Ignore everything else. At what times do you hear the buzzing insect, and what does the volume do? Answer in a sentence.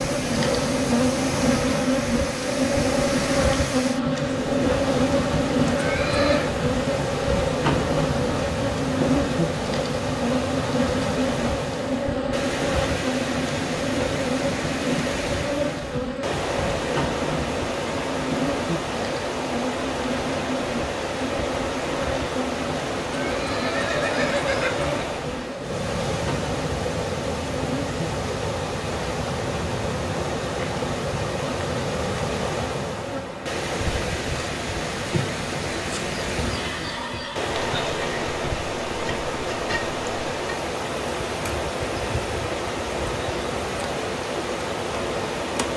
The buzzing insect can be heard from 0.0 to 45.7 s, getting quieter.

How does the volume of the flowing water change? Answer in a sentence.
The loudness of the flowing water stays about the same.